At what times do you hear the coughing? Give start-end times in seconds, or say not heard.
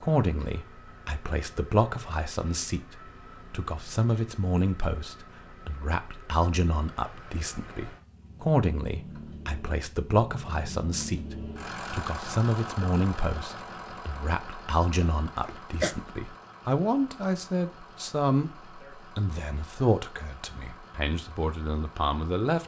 15.0-15.9.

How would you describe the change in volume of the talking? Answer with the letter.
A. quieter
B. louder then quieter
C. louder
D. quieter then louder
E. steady
E.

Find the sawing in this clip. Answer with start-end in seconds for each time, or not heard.
not heard.